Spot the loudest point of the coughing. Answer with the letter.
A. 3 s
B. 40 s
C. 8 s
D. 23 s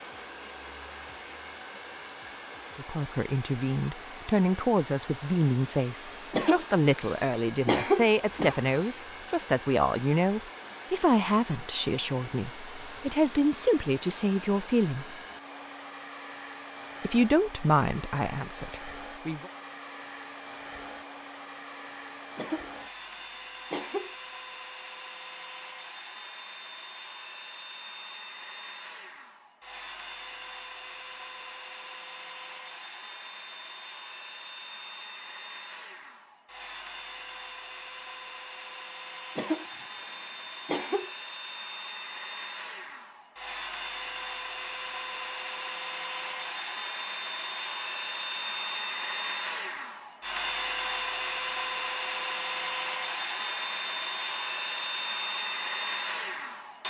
C.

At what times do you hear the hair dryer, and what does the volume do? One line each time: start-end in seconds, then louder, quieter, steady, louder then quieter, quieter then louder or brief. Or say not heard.
0.0-56.8 louder.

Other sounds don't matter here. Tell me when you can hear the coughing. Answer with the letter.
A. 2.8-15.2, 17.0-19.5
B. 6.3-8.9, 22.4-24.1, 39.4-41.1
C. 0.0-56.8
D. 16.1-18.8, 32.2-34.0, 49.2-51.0
B.